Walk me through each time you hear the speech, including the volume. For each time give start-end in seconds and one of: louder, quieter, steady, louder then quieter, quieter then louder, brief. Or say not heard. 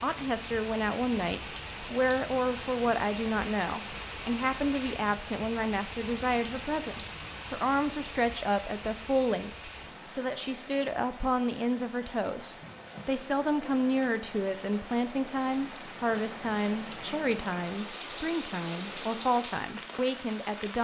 0.0-20.7 steady.